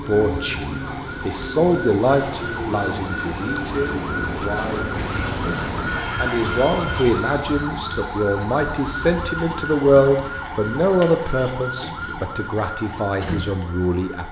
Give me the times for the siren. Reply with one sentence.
You can hear the siren from 0.0 to 14.2 s.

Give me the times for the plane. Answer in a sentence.
You can hear the plane from 2.0 to 7.2 s.